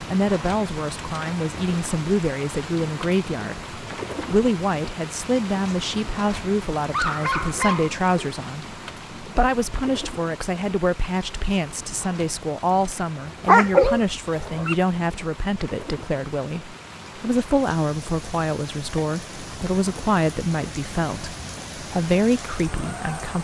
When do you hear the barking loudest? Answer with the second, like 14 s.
14 s.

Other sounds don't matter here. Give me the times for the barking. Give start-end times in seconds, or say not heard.
6.9-8.3, 13.4-14.8.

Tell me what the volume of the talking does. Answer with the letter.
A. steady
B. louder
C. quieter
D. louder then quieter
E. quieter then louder
A.